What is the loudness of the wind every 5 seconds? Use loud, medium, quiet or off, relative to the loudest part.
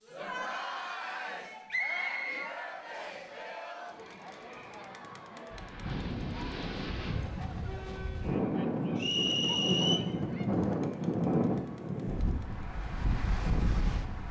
off, loud, loud.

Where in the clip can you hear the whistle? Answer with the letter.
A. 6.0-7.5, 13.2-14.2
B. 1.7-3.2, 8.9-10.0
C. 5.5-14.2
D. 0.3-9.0
B.